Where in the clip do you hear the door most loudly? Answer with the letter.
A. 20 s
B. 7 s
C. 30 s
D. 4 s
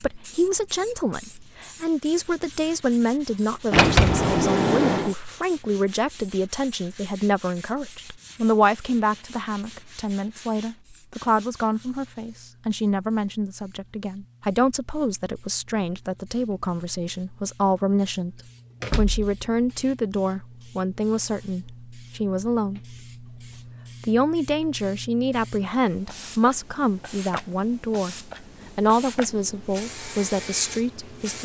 D.